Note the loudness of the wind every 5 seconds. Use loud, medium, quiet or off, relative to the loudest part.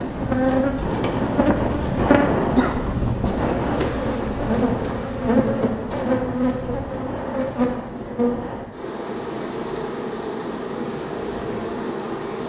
loud, medium, off.